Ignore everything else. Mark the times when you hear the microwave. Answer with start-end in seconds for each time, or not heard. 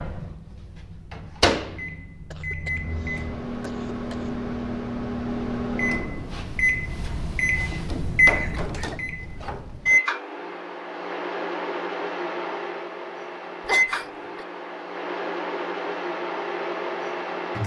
0.0-17.6.